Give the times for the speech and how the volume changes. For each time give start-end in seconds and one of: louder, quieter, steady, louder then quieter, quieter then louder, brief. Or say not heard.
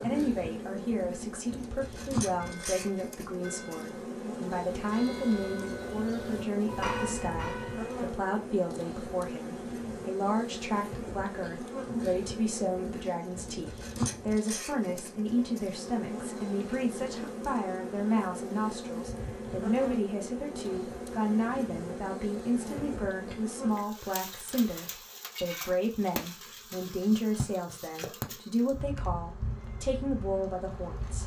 0.0-31.2 steady.